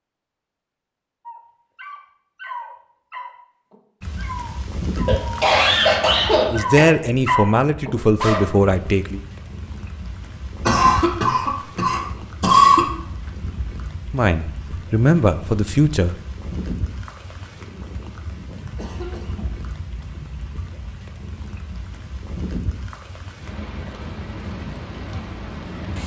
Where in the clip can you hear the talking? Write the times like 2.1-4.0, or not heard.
6.5-9.2, 14.1-16.1.